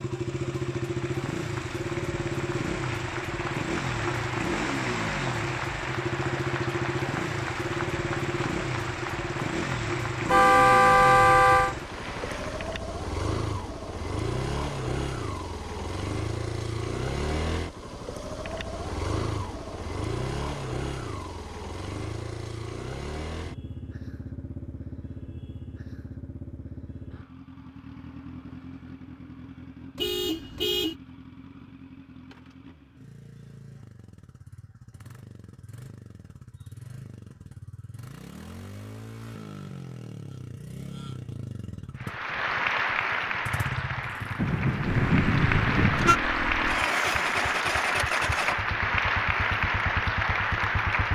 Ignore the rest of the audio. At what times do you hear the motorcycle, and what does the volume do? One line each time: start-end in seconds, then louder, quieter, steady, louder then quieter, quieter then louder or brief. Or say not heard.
0.0-51.1 quieter then louder.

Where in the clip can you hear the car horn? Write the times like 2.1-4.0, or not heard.
10.2-11.8, 29.9-30.9, 44.4-46.2.